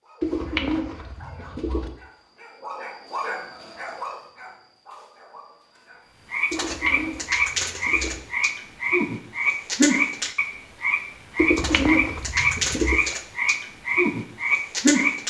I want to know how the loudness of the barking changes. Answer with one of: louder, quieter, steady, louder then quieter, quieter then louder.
louder then quieter.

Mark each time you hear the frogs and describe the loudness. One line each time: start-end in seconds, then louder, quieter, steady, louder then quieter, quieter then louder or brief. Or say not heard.
6.3-15.2 steady.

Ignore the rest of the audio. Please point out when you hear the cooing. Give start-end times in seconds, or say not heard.
0.2-1.9, 6.5-8.2, 11.3-13.0.